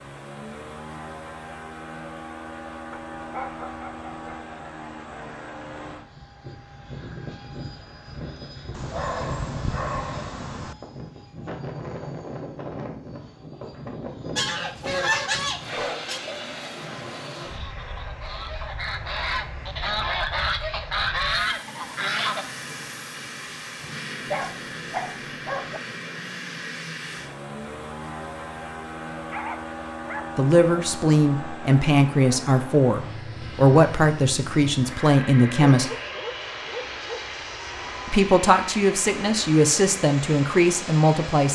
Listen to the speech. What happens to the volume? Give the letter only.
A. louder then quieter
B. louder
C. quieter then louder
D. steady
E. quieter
D.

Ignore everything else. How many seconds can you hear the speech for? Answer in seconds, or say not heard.
9 s.